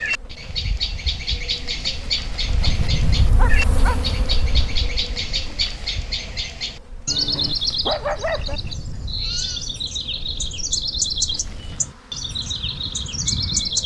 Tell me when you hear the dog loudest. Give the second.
8 s.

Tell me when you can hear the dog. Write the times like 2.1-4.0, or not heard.
3.4-4.0, 7.3-8.6.